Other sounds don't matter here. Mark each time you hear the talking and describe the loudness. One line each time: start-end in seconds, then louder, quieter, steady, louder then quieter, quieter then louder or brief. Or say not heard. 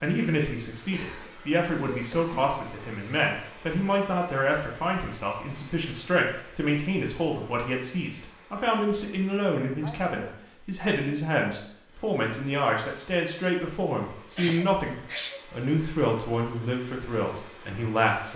0.0-18.3 steady.